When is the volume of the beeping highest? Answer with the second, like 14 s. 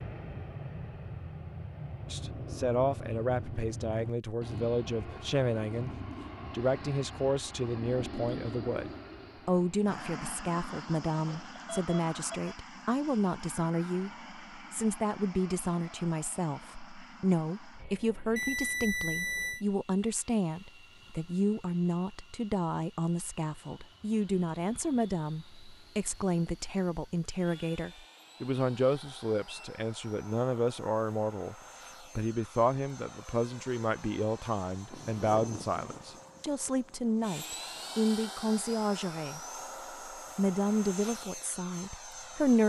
19 s.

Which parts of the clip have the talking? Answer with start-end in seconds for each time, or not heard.
2.0-5.9, 6.5-31.6, 32.1-39.4, 40.4-42.6.